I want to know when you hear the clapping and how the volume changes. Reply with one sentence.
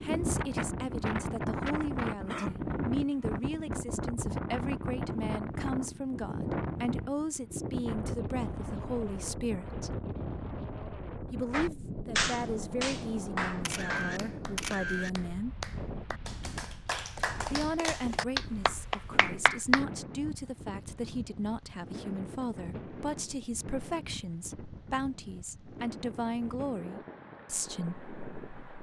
You can hear the clapping from 11.5 to 19.9 s, getting quieter then louder.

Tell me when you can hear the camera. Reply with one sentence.
The camera can be heard from 13.7 to 15.1 s.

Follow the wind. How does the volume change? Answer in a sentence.
The volume of the wind goes down.